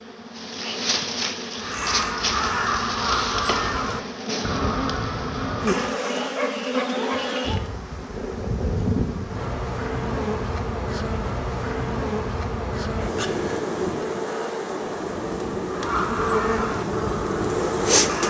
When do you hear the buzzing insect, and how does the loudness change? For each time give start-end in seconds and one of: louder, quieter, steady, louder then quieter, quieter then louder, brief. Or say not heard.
0.0-18.2 steady.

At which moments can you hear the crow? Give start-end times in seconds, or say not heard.
1.6-6.0, 15.7-18.2.